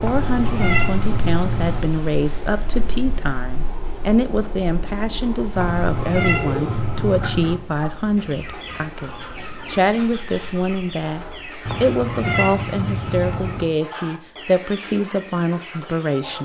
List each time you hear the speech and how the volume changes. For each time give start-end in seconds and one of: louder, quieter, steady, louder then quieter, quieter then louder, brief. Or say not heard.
0.0-16.4 steady.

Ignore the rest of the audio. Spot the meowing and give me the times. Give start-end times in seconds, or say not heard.
0.0-1.9, 5.5-7.5, 11.7-13.7.